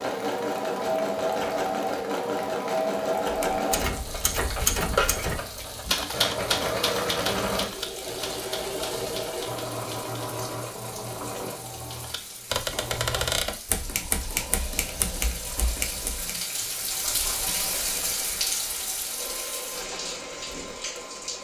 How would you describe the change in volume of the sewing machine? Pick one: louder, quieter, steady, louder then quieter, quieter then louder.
quieter.